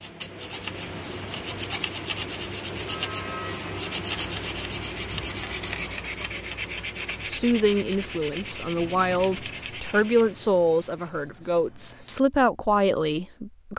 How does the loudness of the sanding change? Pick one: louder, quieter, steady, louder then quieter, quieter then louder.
quieter.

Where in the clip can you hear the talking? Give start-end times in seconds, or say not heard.
7.2-13.7.